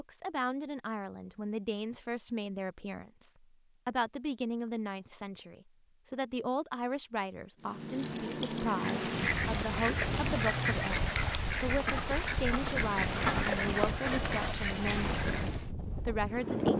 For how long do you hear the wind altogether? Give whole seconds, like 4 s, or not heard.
9 s.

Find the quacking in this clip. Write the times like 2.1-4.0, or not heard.
8.7-15.7.